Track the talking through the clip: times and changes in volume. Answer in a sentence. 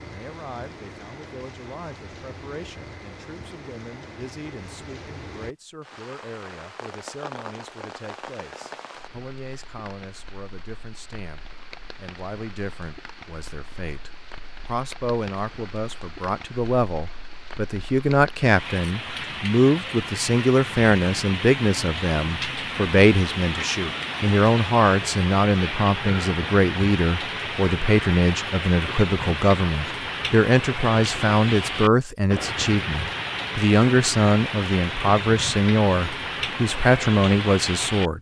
The talking can be heard from 0.0 to 38.1 s, getting louder.